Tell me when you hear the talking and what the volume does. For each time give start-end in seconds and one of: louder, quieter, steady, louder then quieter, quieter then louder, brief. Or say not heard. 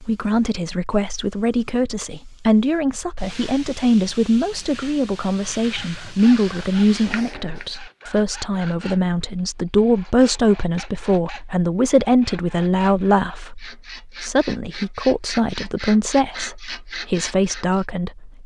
0.0-18.4 steady.